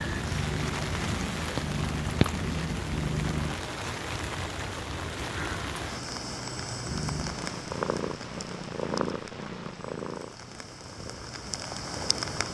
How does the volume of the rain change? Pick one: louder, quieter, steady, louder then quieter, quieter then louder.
quieter.